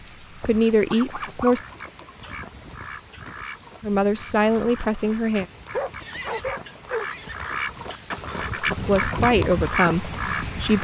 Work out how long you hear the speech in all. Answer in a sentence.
The speech can be heard for 5 seconds in total.